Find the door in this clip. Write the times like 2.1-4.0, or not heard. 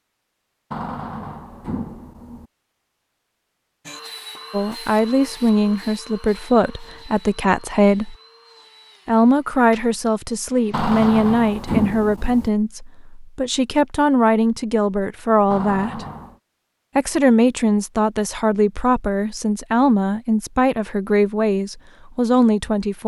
0.7-2.5, 10.7-12.5, 15.5-16.4.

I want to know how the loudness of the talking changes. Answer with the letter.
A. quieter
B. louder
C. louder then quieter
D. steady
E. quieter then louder
D.